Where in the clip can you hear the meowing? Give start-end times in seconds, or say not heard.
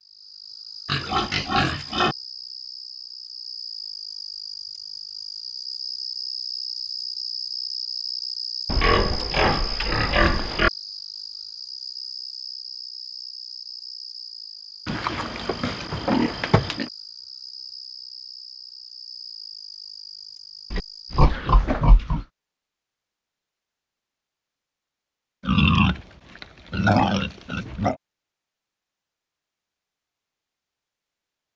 not heard.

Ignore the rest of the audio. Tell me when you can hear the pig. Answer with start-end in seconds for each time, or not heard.
0.8-2.1, 8.7-10.7, 14.8-16.9, 20.7-22.2, 25.4-27.9.